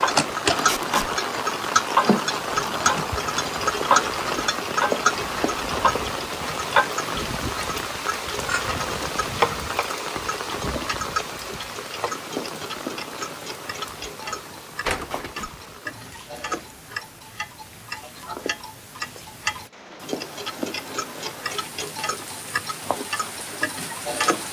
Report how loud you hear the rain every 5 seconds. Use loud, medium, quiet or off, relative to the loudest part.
loud, loud, medium, quiet, medium.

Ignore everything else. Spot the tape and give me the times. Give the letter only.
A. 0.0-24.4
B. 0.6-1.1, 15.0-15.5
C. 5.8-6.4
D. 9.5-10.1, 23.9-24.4
B.